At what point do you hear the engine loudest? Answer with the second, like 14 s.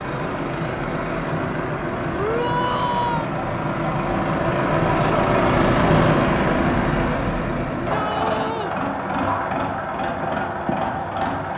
6 s.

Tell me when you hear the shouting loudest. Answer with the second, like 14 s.
3 s.